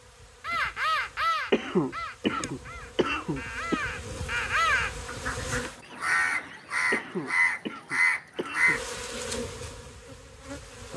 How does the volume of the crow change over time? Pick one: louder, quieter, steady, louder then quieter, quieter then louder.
quieter then louder.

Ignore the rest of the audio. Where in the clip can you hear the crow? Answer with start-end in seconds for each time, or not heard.
0.4-8.8.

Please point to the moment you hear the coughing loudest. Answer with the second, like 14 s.
2 s.